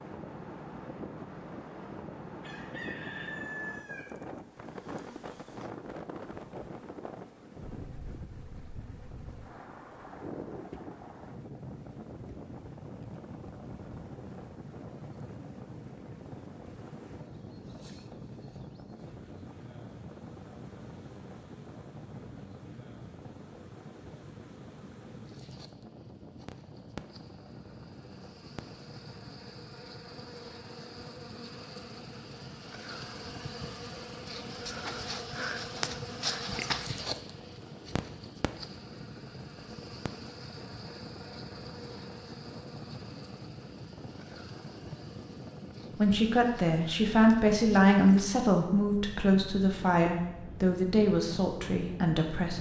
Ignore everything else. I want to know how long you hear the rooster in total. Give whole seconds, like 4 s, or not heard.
2 s.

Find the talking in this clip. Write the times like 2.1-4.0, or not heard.
46.0-52.5.